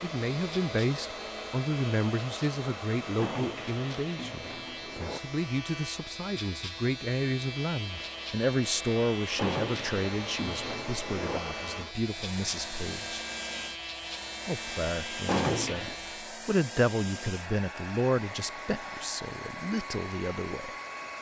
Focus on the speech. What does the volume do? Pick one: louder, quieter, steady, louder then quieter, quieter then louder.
steady.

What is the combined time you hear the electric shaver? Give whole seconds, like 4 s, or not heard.
16 s.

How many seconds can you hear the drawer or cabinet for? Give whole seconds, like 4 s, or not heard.
5 s.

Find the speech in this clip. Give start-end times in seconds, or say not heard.
0.0-13.2, 14.4-20.7.